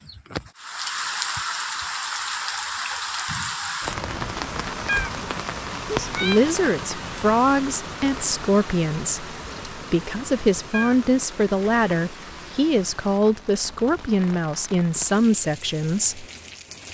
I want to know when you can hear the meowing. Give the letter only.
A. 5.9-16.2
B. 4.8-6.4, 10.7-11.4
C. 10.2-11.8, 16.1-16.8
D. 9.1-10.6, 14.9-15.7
B.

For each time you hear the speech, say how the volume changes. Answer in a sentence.
The speech can be heard from 5.9 to 16.2 s, at a steady volume.